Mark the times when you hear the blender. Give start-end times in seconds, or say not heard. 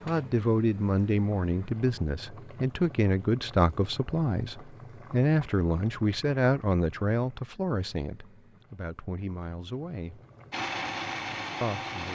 10.5-12.1.